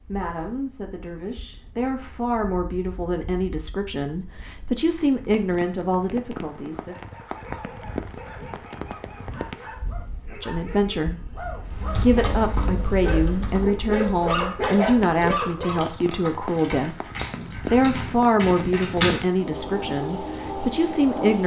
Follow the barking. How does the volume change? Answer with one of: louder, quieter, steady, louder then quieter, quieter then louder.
louder.